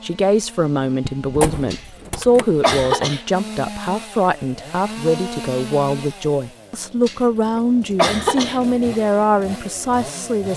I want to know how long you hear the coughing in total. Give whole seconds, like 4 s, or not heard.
3 s.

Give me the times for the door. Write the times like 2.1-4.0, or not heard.
1.0-2.6.